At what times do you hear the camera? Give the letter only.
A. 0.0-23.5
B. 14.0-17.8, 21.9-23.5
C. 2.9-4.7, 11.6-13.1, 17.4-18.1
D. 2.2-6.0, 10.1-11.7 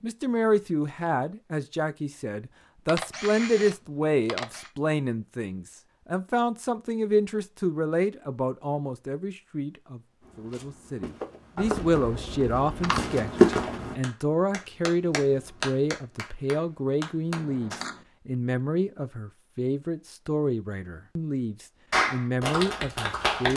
C.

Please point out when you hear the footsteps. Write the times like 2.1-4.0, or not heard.
10.2-13.9.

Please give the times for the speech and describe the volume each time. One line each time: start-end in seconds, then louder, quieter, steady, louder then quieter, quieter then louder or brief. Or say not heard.
0.0-23.5 steady.